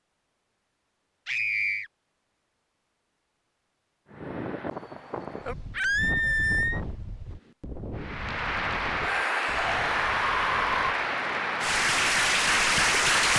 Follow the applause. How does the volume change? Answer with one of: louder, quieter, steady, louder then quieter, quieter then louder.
louder.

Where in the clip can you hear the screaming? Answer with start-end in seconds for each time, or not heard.
1.2-1.9, 5.7-6.8, 9.0-10.7.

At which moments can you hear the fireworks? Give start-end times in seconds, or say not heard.
not heard.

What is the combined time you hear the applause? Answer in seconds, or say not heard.
5 s.